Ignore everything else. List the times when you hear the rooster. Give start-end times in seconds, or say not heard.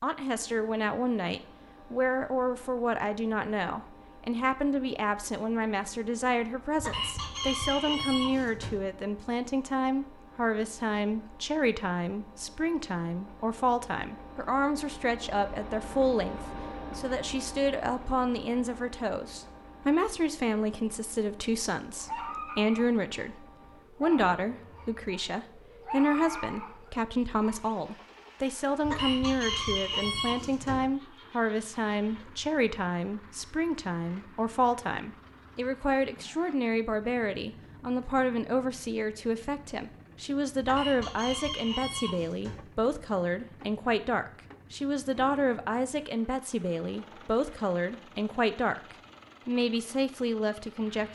6.8-8.8, 28.8-30.9, 40.6-42.6.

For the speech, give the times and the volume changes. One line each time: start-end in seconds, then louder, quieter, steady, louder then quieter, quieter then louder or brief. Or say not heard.
0.0-51.1 steady.